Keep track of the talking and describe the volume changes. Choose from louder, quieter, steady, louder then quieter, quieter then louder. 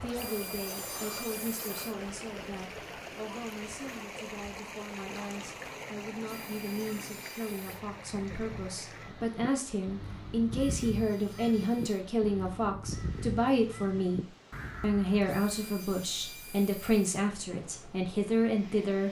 louder.